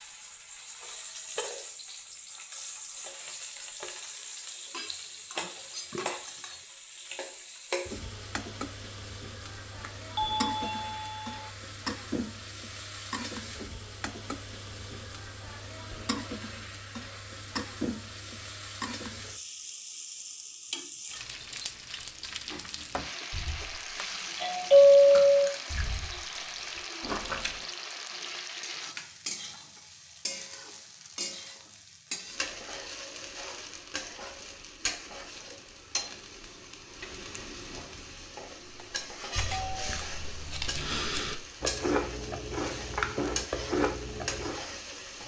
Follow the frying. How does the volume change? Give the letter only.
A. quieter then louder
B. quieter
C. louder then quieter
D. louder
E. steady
E.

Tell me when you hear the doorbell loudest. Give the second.
25 s.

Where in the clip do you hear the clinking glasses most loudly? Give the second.
6 s.